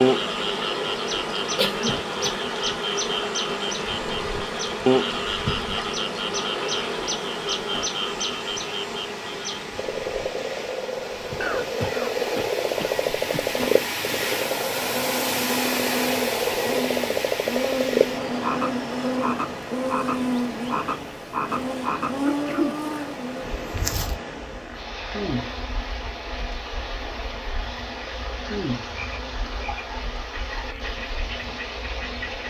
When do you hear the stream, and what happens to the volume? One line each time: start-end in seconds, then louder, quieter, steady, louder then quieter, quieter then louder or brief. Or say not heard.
0.0-32.4 louder then quieter.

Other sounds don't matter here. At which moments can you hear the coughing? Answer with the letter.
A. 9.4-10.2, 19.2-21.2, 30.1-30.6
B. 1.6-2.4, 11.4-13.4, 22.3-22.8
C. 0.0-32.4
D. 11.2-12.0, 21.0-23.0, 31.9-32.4
B.